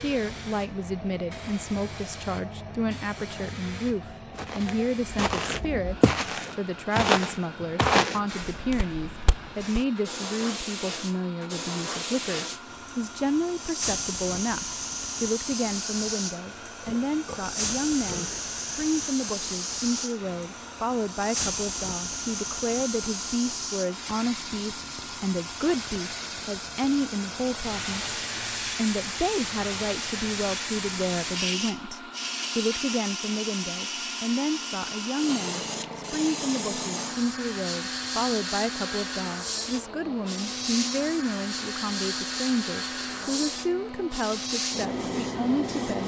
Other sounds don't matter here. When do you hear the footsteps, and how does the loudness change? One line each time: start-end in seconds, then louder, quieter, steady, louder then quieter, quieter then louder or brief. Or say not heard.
4.3-9.8 louder then quieter.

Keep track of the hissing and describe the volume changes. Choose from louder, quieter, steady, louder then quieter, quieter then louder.
louder.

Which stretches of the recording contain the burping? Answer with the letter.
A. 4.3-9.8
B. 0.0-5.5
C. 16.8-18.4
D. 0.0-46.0
C.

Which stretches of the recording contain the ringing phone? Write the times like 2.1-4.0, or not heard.
not heard.